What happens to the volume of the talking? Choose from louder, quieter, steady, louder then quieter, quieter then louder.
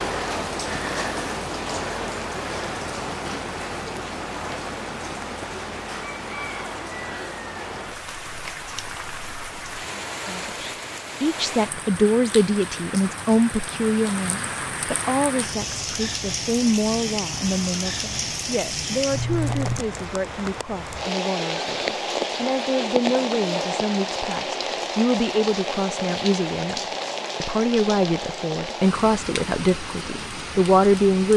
quieter then louder.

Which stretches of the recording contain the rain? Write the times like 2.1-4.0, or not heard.
0.0-31.3.